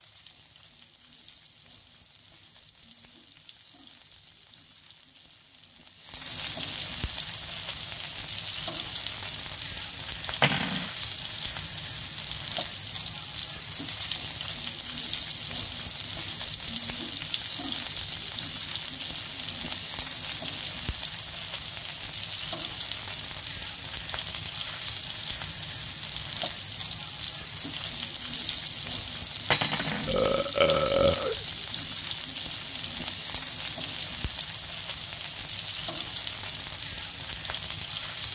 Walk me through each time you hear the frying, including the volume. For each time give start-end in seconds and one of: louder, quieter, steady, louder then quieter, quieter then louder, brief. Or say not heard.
0.0-38.3 louder.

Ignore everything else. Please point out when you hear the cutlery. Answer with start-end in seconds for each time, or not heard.
10.4-10.8, 29.5-30.1.